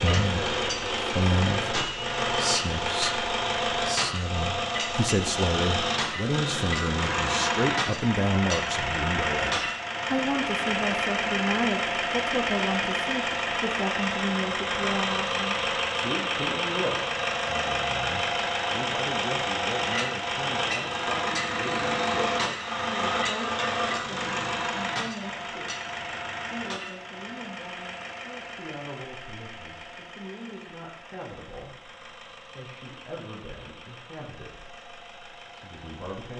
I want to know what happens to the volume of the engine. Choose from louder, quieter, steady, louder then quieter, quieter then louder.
quieter.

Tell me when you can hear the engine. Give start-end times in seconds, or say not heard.
0.0-36.3.